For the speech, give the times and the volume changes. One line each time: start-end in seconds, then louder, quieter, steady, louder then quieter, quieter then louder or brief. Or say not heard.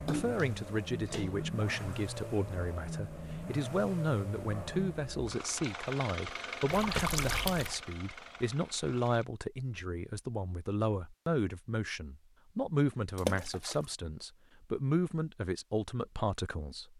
0.1-16.9 steady.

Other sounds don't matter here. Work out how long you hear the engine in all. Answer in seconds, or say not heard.
9 s.